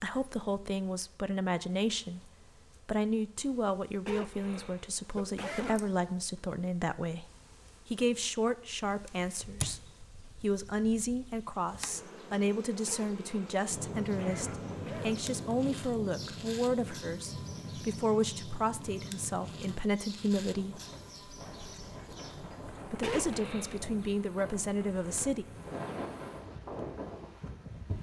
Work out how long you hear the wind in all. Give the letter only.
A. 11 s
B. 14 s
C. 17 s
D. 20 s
B.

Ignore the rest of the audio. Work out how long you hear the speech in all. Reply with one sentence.
The speech can be heard for 22 seconds in total.